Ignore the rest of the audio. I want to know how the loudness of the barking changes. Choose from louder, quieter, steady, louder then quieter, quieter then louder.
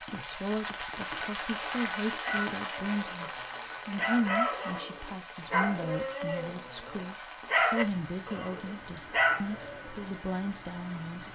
louder.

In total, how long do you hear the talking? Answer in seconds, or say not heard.
11 s.